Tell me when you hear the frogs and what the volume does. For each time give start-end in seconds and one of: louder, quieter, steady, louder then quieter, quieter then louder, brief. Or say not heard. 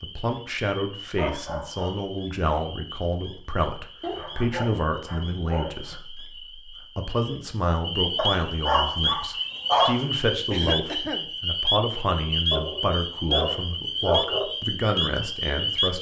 0.0-15.9 louder.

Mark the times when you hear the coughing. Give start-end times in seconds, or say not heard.
10.5-11.3.